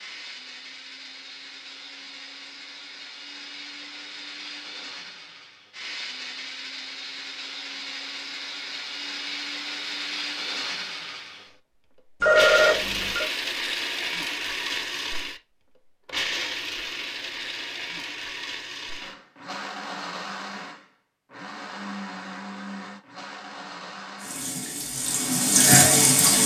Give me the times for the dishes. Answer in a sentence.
The dishes can't be heard in this clip.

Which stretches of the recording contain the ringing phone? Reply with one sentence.
You can hear the ringing phone from 12.2 to 13.2 s.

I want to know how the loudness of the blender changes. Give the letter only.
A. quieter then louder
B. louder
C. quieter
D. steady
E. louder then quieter
E.